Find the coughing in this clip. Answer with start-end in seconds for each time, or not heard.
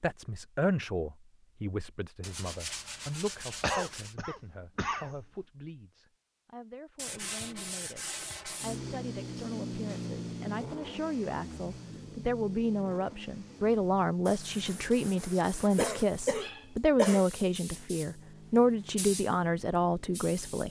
3.6-5.2, 15.8-17.2.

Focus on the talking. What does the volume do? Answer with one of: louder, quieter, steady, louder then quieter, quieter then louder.
quieter then louder.